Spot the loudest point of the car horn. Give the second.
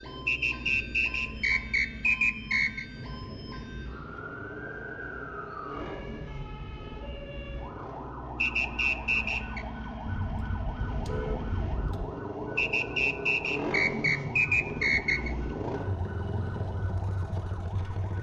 11 s.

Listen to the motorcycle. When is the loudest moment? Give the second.
14 s.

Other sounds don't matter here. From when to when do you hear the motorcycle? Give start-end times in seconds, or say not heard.
0.0-18.1.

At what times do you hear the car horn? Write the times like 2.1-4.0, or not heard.
10.1-12.1.